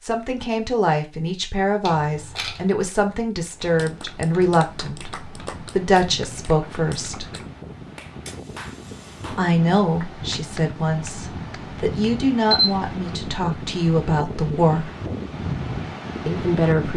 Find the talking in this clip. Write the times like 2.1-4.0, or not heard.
0.0-7.2, 9.3-14.9, 16.2-16.9.